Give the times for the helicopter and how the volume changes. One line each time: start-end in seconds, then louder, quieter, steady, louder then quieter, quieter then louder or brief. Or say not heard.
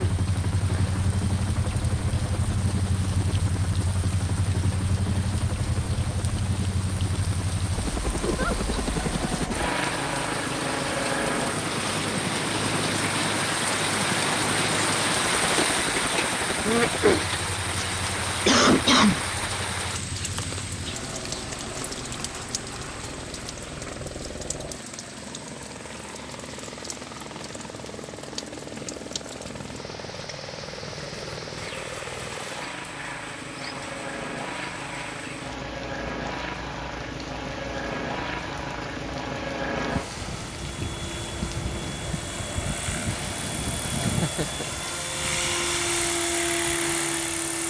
0.0-47.6 quieter then louder.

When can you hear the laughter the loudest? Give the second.
19 s.